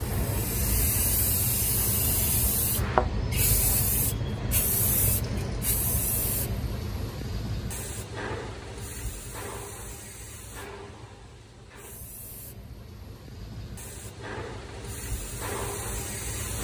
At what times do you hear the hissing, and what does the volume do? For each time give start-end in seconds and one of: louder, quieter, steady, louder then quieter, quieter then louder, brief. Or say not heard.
0.0-16.5 quieter then louder.